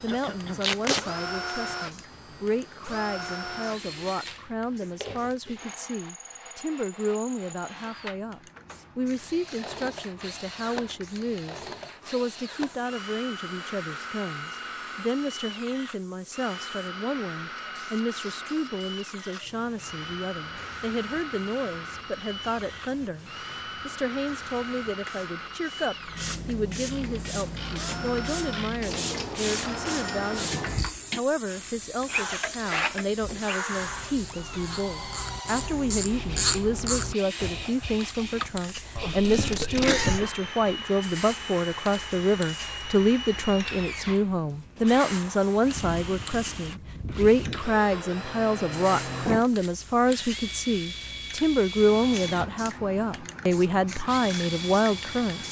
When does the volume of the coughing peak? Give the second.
40 s.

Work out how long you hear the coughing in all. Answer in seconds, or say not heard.
2 s.